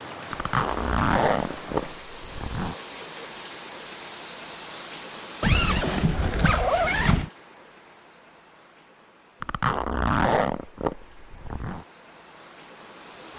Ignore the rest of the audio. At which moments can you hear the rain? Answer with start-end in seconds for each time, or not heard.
0.0-13.3.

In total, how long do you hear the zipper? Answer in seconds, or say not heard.
7 s.